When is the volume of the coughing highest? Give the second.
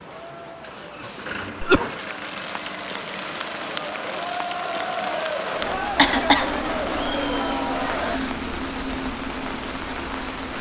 6 s.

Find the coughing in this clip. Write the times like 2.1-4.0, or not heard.
1.0-1.8, 6.0-6.5.